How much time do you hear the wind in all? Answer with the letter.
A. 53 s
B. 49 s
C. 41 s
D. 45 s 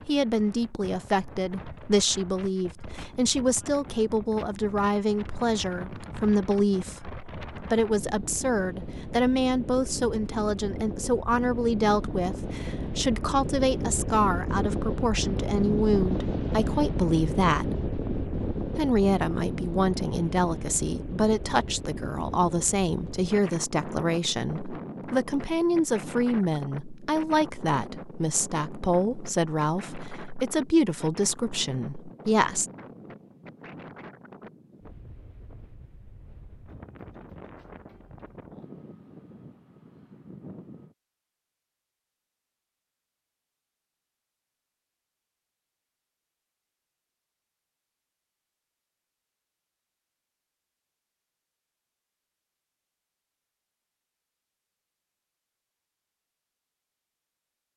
C.